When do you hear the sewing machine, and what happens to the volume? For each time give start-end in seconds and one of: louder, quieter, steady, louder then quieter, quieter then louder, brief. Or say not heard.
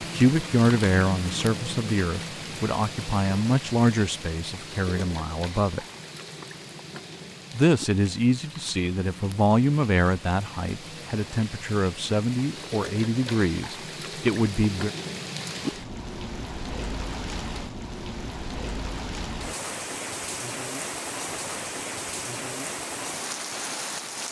not heard.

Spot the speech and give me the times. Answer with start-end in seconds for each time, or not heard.
0.0-5.8, 7.5-14.9.